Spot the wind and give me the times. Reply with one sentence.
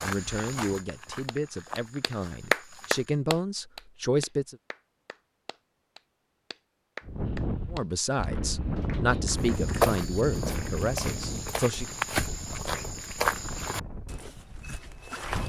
You can hear the wind from 7.0 to 15.4 s.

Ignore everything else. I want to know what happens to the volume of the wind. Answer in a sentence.
The volume of the wind goes down.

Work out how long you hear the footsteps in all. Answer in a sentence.
The footsteps can be heard for 9 seconds in total.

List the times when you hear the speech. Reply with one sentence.
The speech can be heard from 0.0 to 4.5 s and from 7.7 to 11.9 s.